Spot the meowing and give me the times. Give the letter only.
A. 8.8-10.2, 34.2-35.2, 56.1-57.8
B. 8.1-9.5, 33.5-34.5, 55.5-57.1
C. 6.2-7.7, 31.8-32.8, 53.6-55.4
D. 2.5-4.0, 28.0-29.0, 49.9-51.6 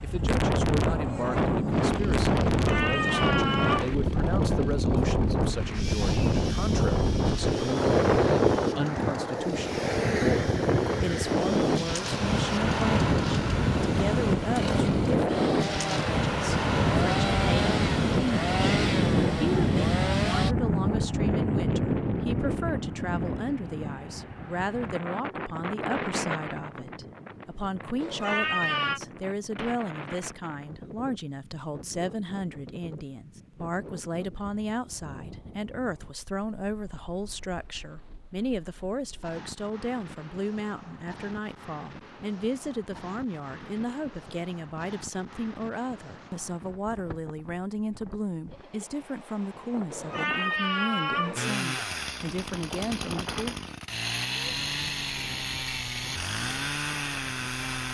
D.